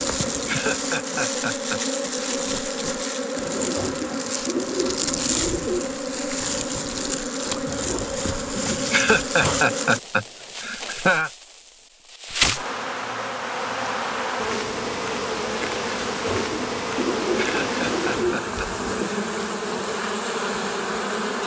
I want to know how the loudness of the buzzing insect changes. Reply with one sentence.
The volume of the buzzing insect stays about the same.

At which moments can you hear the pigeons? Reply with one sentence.
You can hear the pigeons from 3.8 to 5.9 s and from 16.2 to 19.1 s.